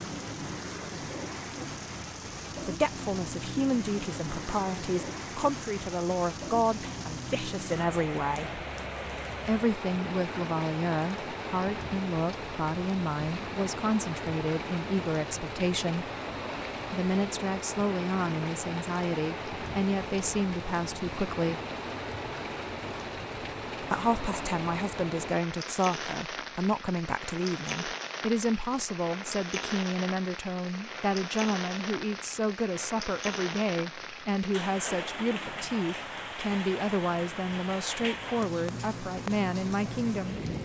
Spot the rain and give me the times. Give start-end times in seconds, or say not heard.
0.0-40.6.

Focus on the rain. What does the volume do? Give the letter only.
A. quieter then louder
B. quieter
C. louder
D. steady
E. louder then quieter
D.